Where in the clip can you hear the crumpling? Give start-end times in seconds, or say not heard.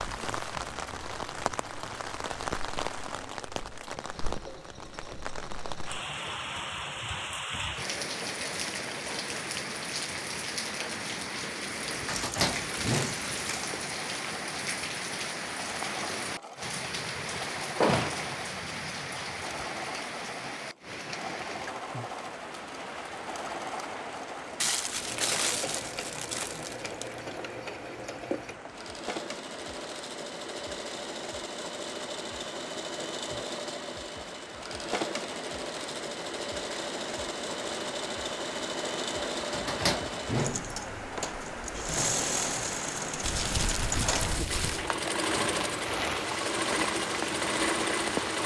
12.1-13.8, 24.6-27.2, 43.2-44.9.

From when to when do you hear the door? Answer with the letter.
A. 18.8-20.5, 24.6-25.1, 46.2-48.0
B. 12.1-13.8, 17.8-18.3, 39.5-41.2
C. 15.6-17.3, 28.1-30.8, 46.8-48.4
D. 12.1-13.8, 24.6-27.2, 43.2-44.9
B.